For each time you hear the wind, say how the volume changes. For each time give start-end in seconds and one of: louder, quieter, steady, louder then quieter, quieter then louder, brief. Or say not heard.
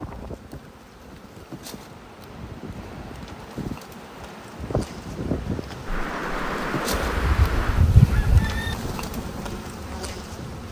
0.0-10.3 louder then quieter.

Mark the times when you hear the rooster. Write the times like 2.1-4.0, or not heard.
7.0-8.8.